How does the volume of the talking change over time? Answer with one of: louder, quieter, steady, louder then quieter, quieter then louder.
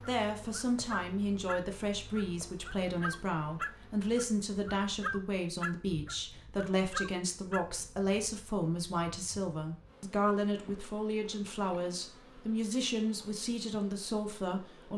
steady.